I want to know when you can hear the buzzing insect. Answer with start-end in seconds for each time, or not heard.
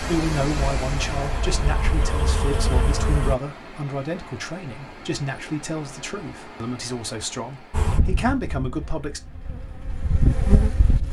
0.0-3.4, 7.7-11.0.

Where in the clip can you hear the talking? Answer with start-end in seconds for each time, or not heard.
0.0-9.2.